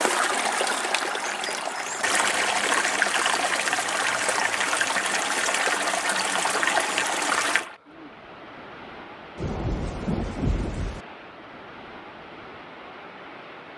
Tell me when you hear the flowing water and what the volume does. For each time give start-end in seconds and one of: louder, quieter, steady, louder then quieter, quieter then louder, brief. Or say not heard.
0.0-13.7 quieter.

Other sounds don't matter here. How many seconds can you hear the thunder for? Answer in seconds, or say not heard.
2 s.